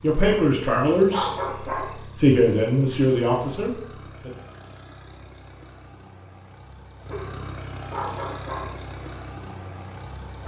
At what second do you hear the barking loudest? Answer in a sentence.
The volume of the barking peaks at 1 second.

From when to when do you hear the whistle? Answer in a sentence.
The whistle can't be heard in this clip.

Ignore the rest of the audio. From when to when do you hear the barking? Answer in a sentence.
You can hear the barking from 0.2 to 1.9 s and from 7.0 to 8.8 s.